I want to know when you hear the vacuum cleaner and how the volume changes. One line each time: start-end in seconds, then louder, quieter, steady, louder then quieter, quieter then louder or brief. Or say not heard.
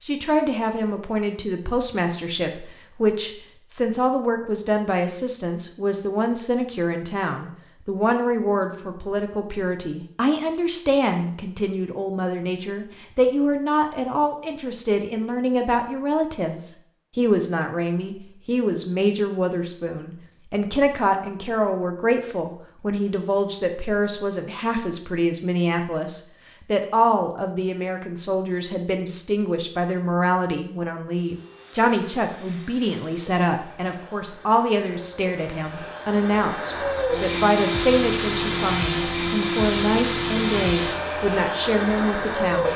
31.1-42.7 louder.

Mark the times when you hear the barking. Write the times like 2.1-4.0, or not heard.
not heard.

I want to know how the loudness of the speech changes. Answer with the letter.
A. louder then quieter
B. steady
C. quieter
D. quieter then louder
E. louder
B.